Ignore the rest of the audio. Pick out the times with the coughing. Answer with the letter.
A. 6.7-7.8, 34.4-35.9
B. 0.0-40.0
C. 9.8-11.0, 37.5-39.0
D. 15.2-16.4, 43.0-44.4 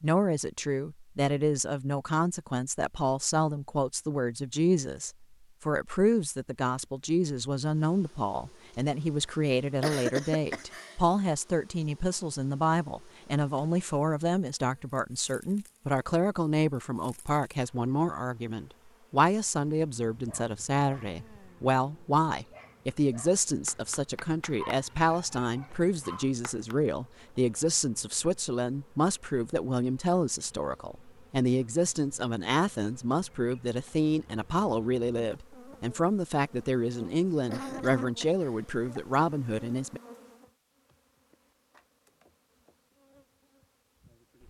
C.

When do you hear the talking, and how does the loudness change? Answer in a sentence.
The talking can be heard from 0.0 to 40.0 s, at a steady volume.